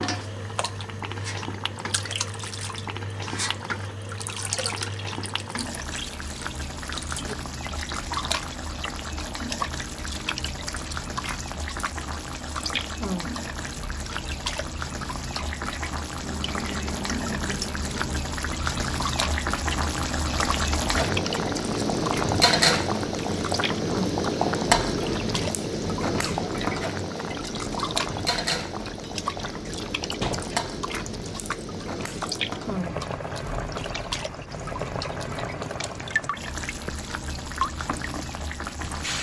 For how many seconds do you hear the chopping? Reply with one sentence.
The chopping can't be heard in this clip.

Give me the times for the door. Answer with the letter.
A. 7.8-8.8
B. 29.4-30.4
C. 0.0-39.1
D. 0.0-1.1
B.